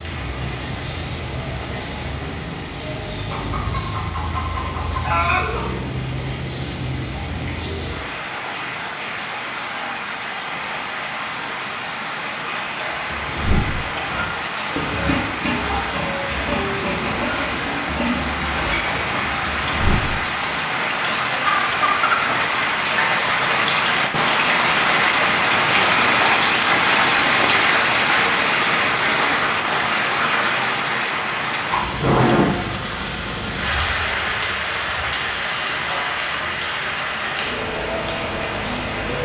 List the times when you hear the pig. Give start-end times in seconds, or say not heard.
12.9-20.6.